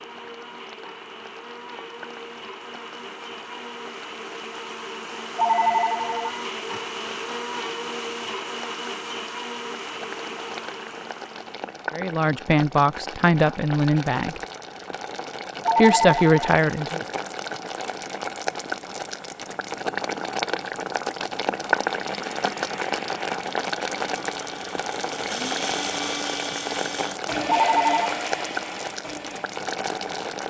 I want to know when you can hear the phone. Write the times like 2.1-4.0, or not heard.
5.3-6.8, 15.7-17.1, 27.4-28.1.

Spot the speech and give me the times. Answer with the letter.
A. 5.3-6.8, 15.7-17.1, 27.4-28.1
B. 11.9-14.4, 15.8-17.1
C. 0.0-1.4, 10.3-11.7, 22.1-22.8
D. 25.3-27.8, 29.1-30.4
B.